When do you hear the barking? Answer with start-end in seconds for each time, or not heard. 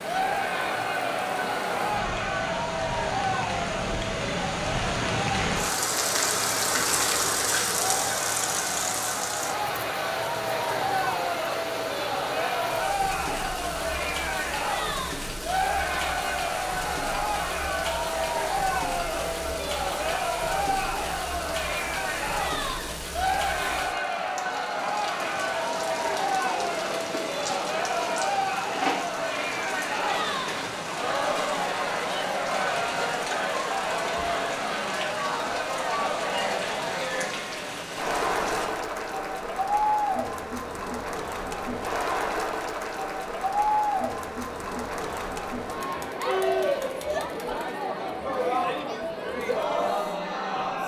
not heard.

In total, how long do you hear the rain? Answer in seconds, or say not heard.
39 s.